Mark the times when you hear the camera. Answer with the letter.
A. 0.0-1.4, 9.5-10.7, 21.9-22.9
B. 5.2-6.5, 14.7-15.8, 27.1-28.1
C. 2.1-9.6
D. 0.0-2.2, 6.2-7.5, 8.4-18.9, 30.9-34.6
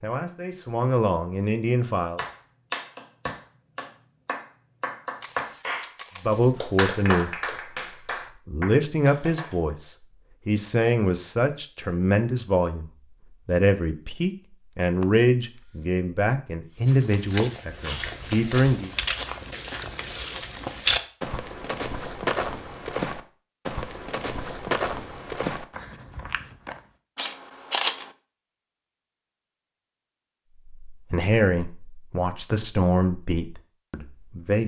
B.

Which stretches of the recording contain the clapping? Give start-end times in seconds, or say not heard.
2.1-9.6.